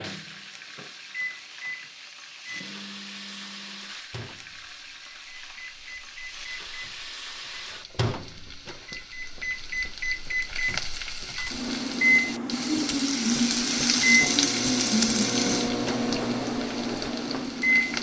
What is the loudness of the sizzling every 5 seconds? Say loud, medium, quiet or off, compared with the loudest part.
quiet, quiet, loud, loud.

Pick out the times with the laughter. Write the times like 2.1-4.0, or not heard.
not heard.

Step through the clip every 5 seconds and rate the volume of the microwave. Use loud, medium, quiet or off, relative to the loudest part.
quiet, medium, loud, loud.